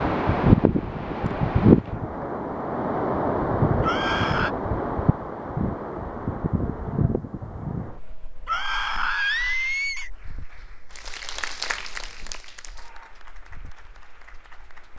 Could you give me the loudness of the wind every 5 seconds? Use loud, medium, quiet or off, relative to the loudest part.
loud, medium, quiet.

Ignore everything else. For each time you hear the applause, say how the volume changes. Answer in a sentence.
You can hear the applause from 10.1 to 14.9 s, getting louder then quieter.